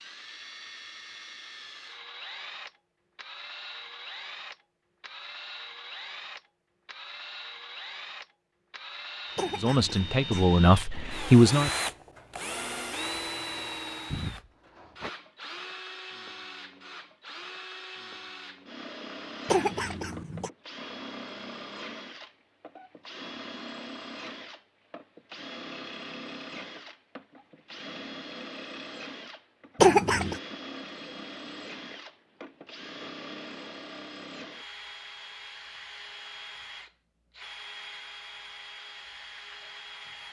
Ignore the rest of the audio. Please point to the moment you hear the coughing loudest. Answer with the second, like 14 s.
30 s.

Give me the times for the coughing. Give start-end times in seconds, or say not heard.
9.3-10.6, 19.4-20.5, 29.8-30.4.